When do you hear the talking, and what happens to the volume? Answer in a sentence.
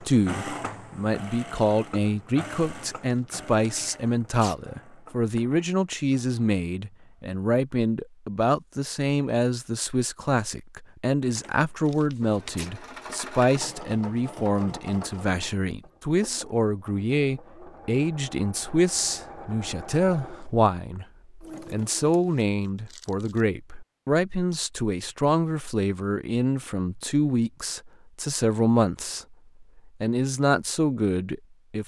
You can hear the talking from 0.0 to 21.1 s, at a steady volume; and from 21.6 to 31.8 s, at a steady volume.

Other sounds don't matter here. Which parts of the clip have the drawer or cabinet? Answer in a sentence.
You can't hear the drawer or cabinet here.